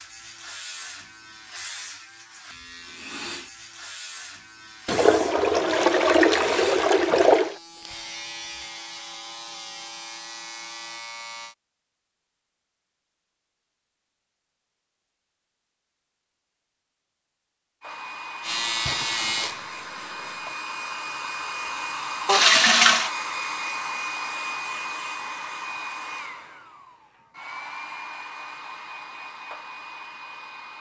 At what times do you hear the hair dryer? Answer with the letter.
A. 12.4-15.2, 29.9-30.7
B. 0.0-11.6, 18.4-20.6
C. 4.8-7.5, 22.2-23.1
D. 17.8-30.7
D.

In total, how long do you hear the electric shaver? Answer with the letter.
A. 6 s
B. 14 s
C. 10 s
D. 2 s
B.